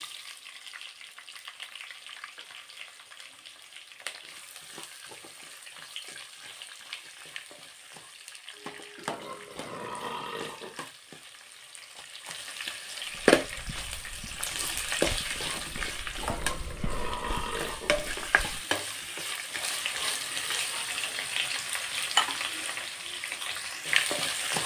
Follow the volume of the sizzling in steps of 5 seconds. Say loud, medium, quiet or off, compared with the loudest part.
quiet, quiet, loud, loud, loud.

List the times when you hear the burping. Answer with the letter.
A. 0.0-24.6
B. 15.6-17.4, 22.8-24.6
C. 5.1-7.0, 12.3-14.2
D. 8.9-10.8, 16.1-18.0
D.